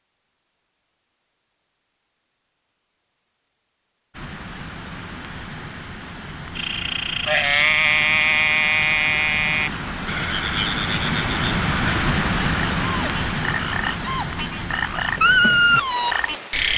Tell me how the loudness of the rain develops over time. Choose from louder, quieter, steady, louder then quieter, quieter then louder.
louder then quieter.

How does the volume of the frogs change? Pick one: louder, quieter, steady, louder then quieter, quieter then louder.
quieter then louder.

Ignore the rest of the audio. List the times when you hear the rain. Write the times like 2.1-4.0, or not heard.
4.1-16.7.